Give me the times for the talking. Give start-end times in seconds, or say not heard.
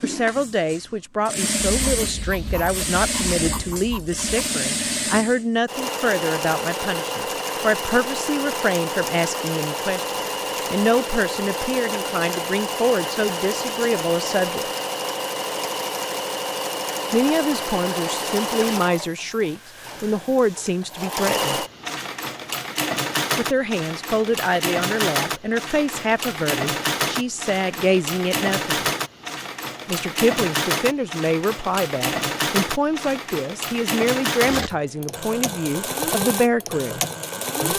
0.0-14.7, 17.1-21.6, 23.4-28.8, 29.9-37.7.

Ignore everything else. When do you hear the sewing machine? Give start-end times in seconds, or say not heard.
0.0-37.7.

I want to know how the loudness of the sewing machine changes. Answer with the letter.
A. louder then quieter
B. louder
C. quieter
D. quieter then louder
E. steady
E.